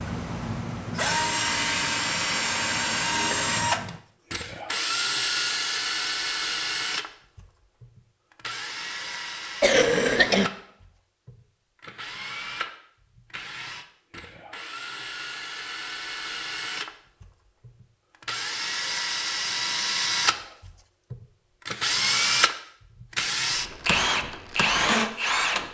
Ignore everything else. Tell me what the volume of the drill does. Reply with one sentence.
The volume of the drill goes down, then up.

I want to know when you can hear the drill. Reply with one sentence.
You can hear the drill from 0.0 to 25.6 s.